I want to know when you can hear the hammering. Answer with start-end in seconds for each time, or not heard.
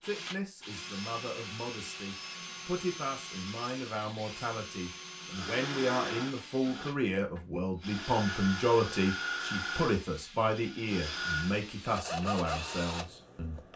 not heard.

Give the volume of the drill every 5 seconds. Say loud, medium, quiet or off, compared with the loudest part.
medium, loud, loud.